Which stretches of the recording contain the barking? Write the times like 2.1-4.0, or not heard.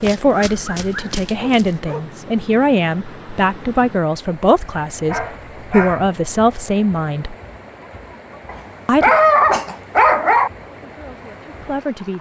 0.5-2.0, 5.0-6.1, 8.4-10.5.